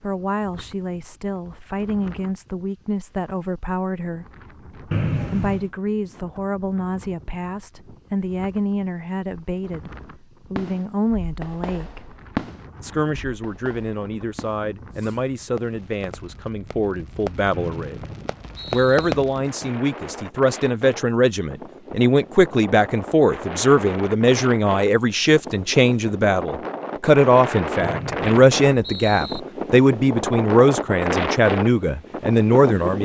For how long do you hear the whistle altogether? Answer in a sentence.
You can hear the whistle for 4 seconds altogether.